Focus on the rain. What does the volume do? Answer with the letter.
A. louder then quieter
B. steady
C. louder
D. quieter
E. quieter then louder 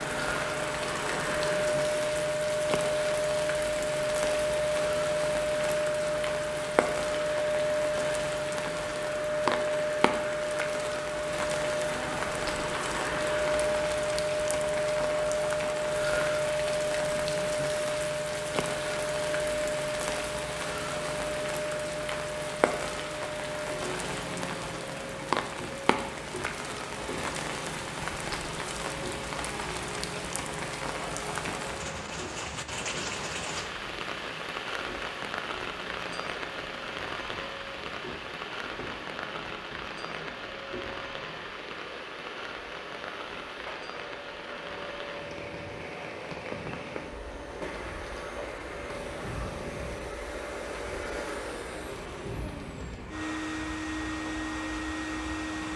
D.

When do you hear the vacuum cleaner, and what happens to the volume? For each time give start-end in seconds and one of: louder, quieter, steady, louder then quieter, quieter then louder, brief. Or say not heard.
0.0-55.7 quieter then louder.